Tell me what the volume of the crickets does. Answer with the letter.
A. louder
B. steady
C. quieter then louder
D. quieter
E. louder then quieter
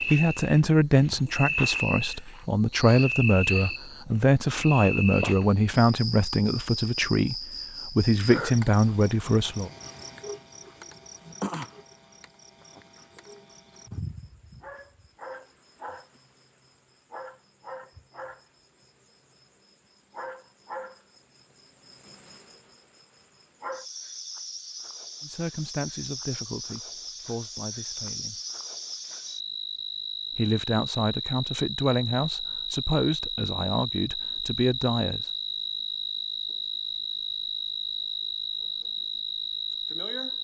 C.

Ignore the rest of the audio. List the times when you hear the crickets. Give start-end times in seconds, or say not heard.
0.0-40.3.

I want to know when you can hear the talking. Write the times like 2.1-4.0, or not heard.
0.0-9.7, 25.2-28.4, 30.4-35.2.